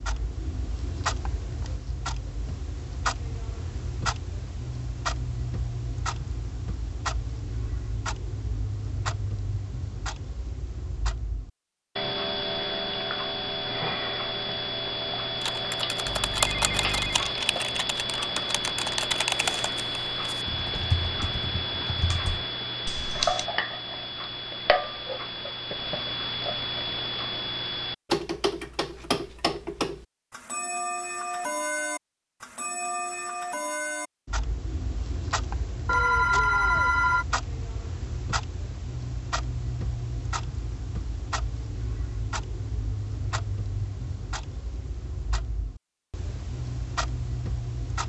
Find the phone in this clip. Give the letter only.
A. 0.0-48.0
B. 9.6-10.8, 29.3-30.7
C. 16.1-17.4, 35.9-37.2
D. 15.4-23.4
C.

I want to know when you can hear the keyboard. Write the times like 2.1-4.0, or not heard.
15.4-23.4.